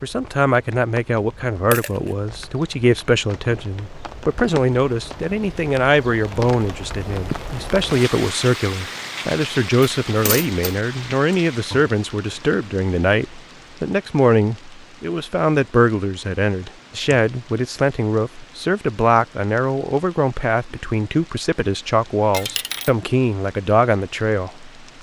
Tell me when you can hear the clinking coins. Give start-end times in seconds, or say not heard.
1.7-2.1, 10.1-10.8, 22.3-22.9.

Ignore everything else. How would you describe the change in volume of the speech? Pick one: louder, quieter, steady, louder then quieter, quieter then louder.
steady.